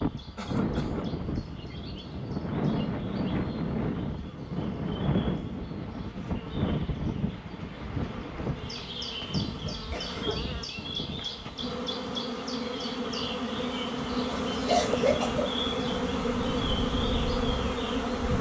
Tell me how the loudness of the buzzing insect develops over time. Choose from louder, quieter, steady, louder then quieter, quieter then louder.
louder.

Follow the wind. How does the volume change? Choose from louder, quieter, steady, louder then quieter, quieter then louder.
quieter then louder.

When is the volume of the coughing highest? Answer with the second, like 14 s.
15 s.